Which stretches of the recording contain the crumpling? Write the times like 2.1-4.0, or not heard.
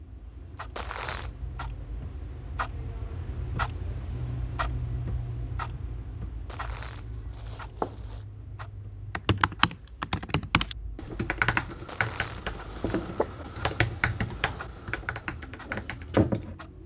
0.8-1.3, 6.5-8.2, 11.8-13.2.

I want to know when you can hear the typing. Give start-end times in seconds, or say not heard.
9.1-16.6.